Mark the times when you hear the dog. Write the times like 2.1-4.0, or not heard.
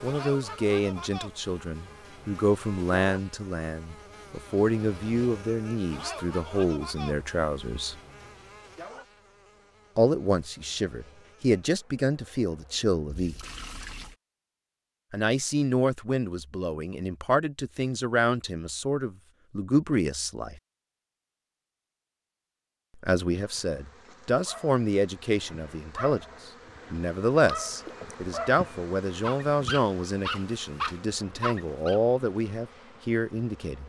24.4-32.0.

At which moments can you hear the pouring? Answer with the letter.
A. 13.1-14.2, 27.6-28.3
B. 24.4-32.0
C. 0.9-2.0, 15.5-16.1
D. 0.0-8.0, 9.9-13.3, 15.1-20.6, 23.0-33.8
A.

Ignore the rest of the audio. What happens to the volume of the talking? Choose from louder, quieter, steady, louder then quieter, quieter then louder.
steady.